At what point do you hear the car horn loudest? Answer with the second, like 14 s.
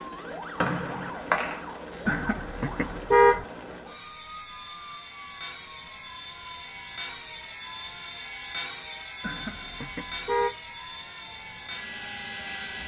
3 s.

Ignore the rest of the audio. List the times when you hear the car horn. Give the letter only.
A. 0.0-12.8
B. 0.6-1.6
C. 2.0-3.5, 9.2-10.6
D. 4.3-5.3
C.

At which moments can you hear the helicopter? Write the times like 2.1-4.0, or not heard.
0.0-12.8.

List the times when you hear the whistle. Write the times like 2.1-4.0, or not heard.
0.6-1.6.